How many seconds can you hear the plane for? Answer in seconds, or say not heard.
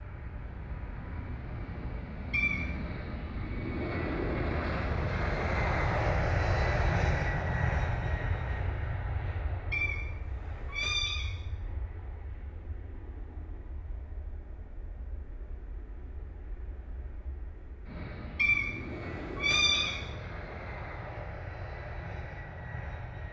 23 s.